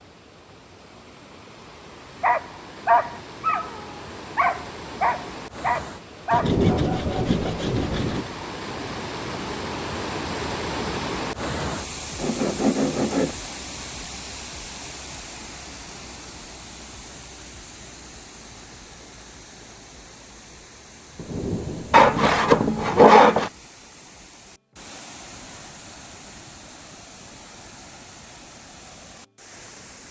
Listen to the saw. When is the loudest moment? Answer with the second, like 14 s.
23 s.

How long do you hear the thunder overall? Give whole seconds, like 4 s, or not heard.
4 s.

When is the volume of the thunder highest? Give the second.
7 s.